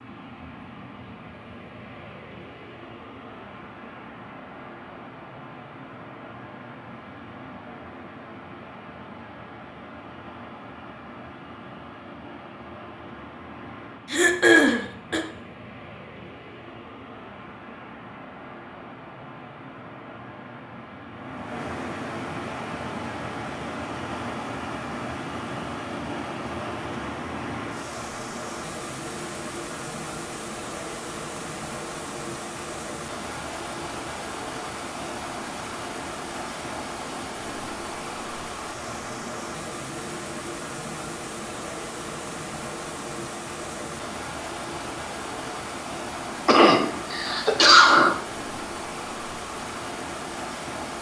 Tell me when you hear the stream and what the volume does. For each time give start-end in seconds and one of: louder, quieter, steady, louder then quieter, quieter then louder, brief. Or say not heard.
0.0-50.9 louder.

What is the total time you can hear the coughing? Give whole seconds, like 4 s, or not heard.
3 s.